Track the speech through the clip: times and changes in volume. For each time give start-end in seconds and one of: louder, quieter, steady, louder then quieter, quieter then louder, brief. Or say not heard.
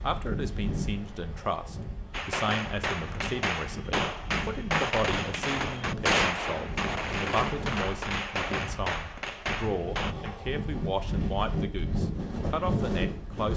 0.0-13.5 steady.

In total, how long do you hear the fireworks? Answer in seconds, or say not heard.
8 s.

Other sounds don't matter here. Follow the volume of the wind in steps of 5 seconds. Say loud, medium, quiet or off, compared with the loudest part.
medium, medium, loud.